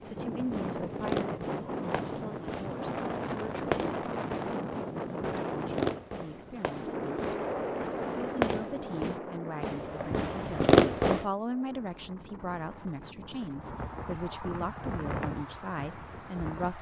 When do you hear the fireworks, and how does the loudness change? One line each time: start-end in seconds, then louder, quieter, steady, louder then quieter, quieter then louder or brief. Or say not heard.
0.0-11.2 louder.